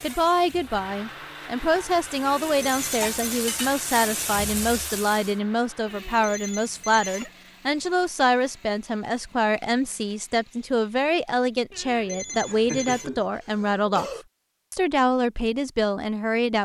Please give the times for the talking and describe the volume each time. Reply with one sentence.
The talking can be heard from 0.0 to 14.1 s, at a steady volume; and briefly from 14.7 to 16.5 s.